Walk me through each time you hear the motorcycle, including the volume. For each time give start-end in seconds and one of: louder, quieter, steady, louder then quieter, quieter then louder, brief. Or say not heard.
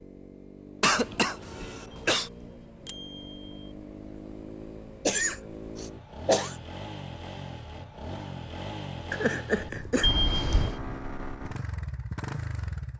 0.0-12.9 louder.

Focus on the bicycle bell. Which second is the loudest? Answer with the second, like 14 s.
10 s.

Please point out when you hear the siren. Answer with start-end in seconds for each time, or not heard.
not heard.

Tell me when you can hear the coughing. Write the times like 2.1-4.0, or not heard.
0.8-2.3, 5.0-6.5, 9.1-10.1.